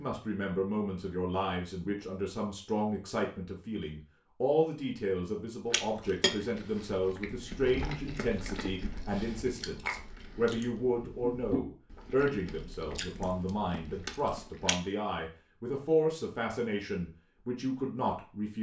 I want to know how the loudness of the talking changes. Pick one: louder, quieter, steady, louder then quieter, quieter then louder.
steady.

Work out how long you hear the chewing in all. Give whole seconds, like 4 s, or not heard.
9 s.